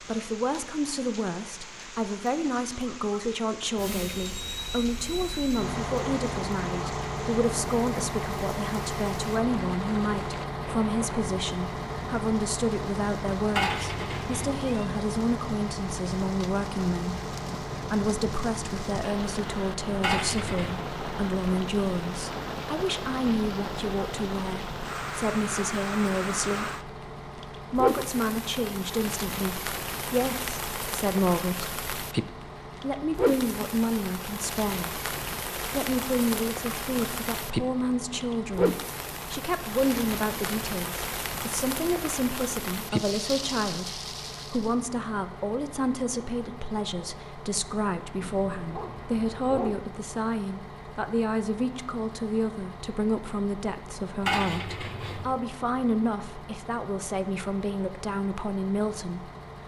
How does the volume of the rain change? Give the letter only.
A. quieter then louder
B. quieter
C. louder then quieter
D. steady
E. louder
E.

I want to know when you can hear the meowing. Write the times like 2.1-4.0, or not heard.
13.5-14.8, 20.0-20.8, 54.2-55.3.